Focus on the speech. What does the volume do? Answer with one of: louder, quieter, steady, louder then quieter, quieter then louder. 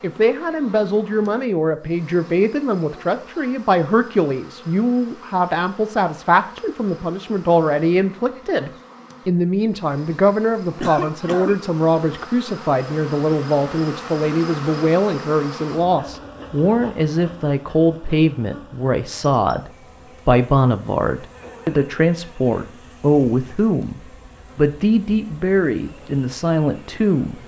steady.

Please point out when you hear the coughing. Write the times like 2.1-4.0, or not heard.
10.8-11.6, 21.3-21.9.